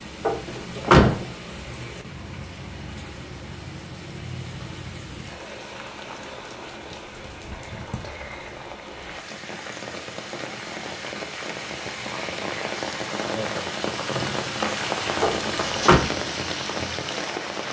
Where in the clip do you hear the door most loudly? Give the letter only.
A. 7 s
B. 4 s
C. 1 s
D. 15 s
C.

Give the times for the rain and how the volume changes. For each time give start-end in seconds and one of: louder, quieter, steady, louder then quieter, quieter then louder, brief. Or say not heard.
0.0-17.6 louder.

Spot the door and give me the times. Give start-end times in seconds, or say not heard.
0.2-1.2, 15.2-16.0.